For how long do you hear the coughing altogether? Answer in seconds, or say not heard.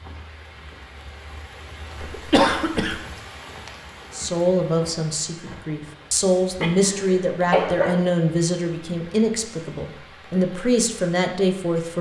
2 s.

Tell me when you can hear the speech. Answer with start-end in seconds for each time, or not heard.
4.1-11.9.